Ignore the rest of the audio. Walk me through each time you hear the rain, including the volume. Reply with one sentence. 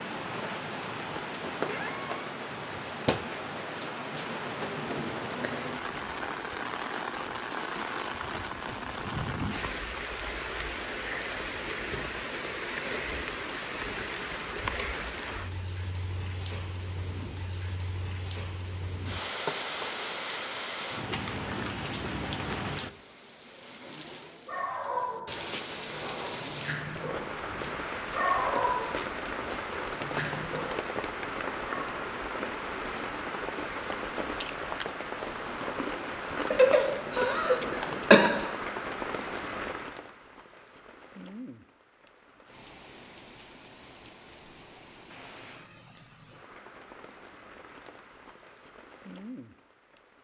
You can hear the rain from 0.0 to 50.1 s, getting quieter.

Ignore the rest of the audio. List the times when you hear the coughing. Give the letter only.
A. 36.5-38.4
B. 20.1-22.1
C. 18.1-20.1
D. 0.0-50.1
A.